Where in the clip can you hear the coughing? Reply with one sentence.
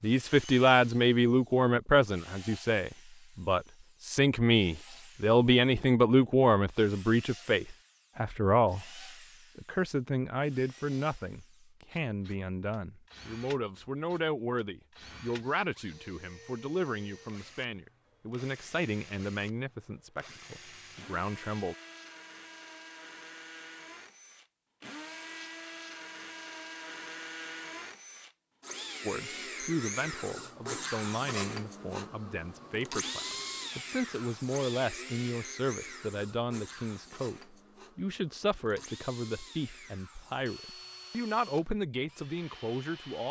You can't hear the coughing here.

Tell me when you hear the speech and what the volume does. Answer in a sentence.
You can hear the speech from 0.0 to 21.8 s, getting quieter; and from 29.1 to 43.2 s, at a steady volume.